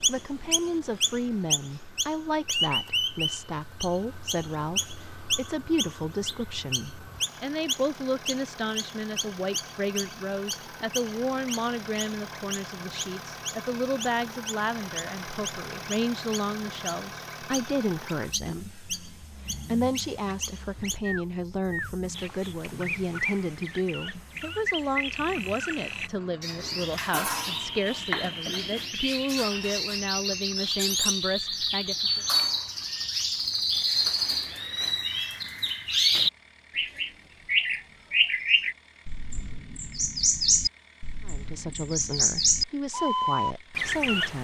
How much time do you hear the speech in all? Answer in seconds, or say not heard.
35 s.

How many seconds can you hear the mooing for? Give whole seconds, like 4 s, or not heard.
not heard.